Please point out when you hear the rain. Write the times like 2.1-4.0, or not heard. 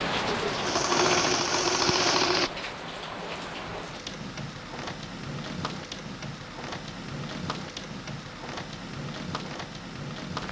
0.0-10.4.